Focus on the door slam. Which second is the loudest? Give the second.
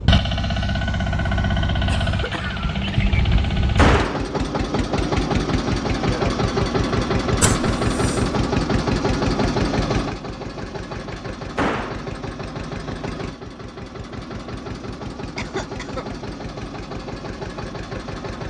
4 s.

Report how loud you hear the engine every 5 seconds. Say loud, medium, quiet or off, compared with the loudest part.
loud, loud, medium, medium.